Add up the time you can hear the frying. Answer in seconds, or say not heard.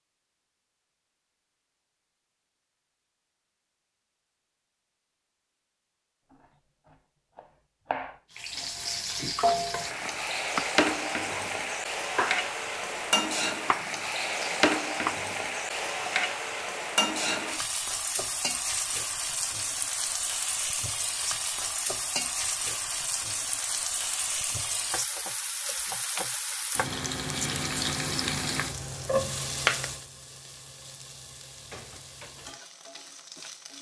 25 s.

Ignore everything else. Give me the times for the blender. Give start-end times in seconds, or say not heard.
not heard.